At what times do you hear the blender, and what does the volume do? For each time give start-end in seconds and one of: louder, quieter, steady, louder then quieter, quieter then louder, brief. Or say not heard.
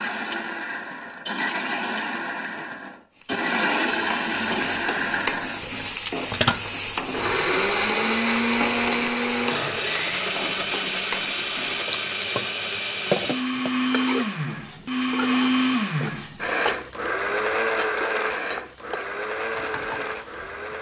0.0-20.7 steady.